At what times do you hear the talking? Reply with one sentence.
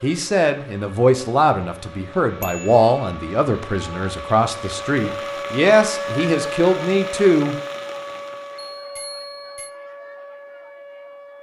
The talking can be heard from 0.0 to 7.5 s.